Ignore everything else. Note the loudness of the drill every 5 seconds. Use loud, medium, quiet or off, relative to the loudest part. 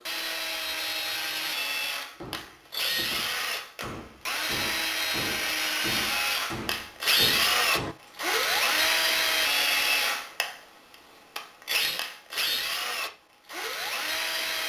medium, loud, medium.